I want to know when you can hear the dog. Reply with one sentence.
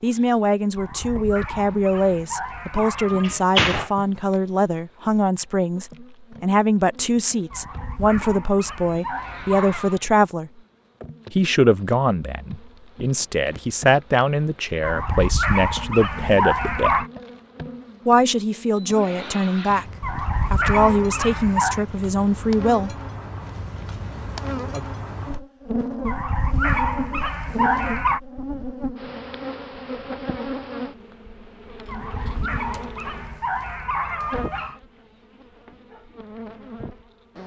The dog can be heard from 0.8 to 3.5 s, from 7.5 to 10.0 s, from 14.8 to 17.1 s, from 20.0 to 21.9 s, from 26.1 to 28.2 s and from 31.9 to 34.8 s.